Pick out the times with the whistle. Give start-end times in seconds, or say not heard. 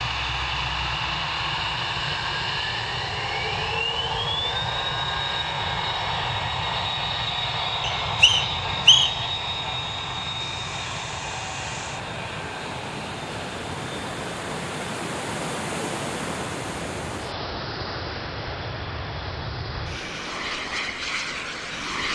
8.0-9.3.